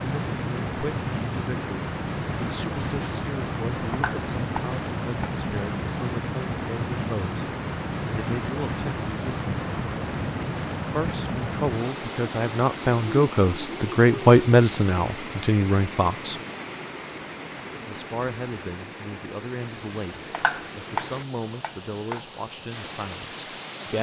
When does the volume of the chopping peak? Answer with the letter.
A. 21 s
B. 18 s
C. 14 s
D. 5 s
A.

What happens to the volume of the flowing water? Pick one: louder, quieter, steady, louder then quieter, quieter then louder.
quieter.